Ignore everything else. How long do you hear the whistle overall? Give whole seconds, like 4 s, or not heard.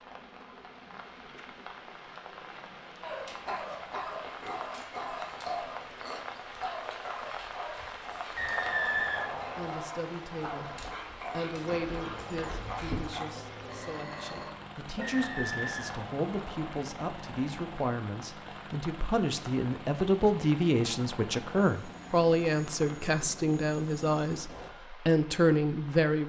3 s.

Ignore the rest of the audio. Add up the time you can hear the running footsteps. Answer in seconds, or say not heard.
not heard.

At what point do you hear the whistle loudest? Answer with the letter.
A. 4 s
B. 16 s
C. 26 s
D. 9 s
D.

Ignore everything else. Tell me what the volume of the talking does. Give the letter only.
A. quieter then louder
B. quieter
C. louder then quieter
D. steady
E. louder
E.